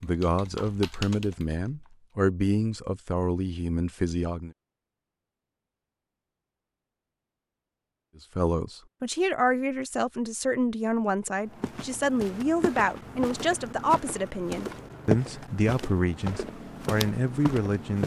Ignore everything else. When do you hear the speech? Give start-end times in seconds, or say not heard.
0.0-4.5, 8.3-18.0.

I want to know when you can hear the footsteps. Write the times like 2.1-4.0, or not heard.
11.4-18.0.